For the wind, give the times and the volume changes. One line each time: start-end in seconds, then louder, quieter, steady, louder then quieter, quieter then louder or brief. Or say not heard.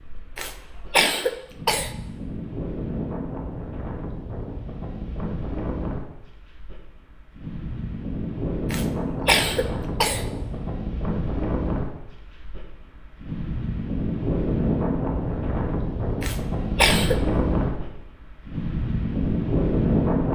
0.0-20.3 louder.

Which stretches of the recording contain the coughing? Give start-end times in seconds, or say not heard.
0.3-1.9, 8.7-10.2, 16.2-17.2.